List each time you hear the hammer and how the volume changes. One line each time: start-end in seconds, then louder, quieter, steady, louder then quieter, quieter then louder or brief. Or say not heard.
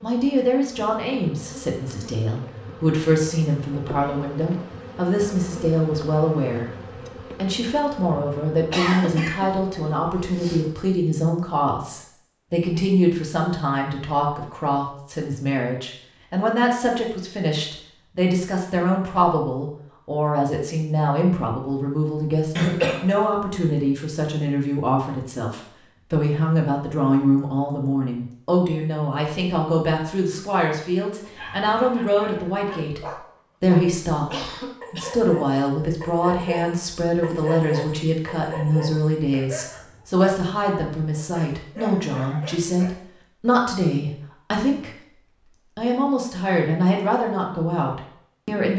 not heard.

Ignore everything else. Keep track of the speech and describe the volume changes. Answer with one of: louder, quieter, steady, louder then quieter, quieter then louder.
steady.